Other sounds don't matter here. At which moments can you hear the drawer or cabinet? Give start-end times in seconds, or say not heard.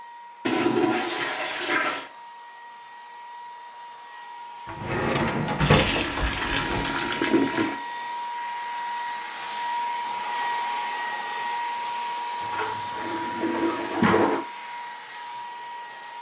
4.7-6.8.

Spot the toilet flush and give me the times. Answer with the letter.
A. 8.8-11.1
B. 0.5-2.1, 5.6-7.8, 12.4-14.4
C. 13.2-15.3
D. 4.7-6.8
B.